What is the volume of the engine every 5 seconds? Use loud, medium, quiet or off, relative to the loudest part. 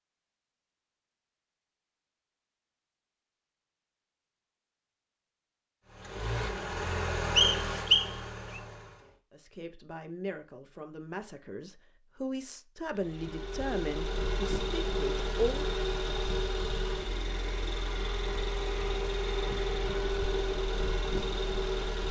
off, loud, loud, loud, loud.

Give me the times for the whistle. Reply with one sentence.
You can hear the whistle from 7.3 to 8.6 s.